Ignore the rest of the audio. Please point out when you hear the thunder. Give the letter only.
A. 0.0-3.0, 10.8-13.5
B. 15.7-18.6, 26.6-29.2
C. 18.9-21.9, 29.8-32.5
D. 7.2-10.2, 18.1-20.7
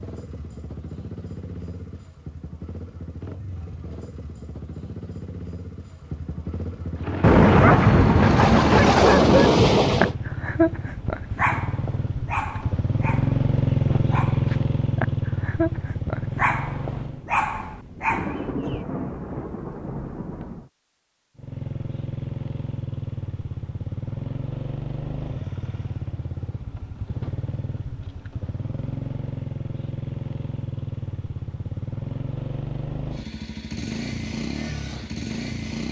D.